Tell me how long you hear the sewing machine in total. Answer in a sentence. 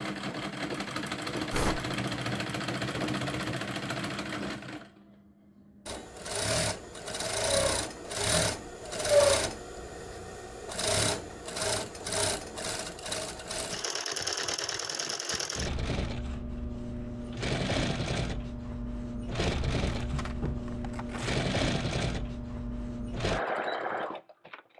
You can hear the sewing machine for 25 seconds altogether.